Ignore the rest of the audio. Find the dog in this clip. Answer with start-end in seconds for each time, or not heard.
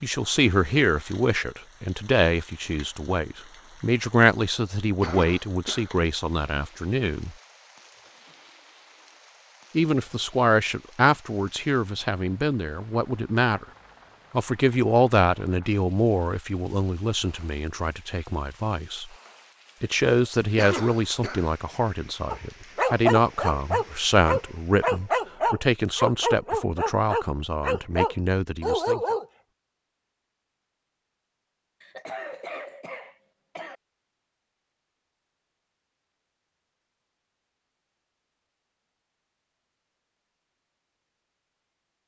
22.3-29.2.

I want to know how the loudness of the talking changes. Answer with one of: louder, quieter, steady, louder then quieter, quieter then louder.
steady.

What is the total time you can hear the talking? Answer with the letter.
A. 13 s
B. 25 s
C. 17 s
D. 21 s
B.